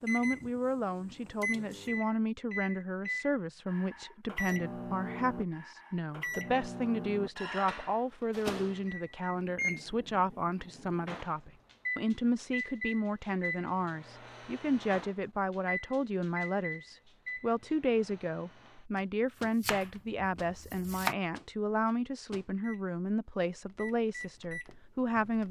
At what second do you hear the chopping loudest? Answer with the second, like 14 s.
21 s.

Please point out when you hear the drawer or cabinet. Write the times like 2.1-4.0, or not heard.
not heard.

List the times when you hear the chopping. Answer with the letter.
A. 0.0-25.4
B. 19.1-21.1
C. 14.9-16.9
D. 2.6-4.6
B.